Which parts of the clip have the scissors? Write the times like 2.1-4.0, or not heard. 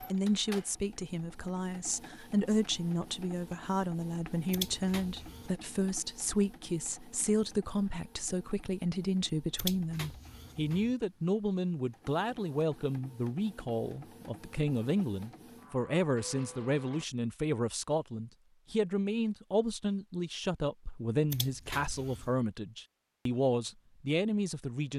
4.5-5.5, 9.6-10.9, 21.3-22.4.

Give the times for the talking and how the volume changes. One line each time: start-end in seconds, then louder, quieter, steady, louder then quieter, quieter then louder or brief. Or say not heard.
0.0-24.9 steady.